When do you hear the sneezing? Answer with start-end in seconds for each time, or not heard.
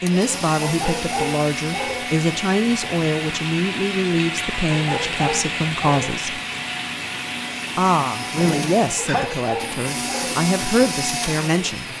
8.3-9.4.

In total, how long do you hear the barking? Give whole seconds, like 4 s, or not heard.
4 s.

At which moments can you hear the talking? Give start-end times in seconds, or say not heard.
0.0-6.4, 7.8-11.9.